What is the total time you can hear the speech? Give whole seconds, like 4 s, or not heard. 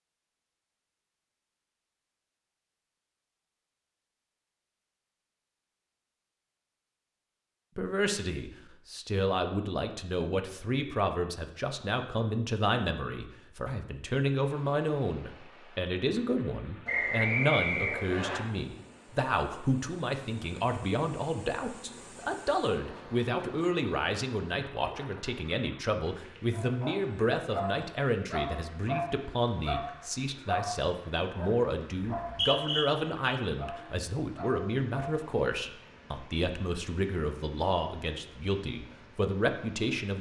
32 s.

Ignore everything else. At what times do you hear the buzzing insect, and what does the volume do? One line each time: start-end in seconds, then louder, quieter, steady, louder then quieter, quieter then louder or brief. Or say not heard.
not heard.